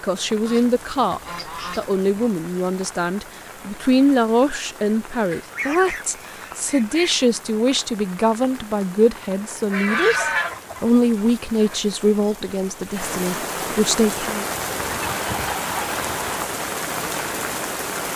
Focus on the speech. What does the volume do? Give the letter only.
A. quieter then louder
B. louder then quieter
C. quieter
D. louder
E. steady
E.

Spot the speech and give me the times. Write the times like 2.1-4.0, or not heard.
0.0-14.4.